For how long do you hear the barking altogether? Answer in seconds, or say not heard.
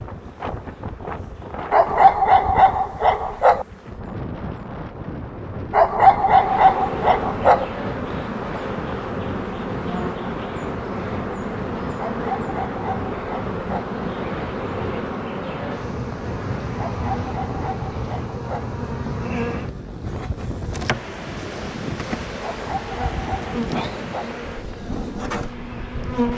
10 s.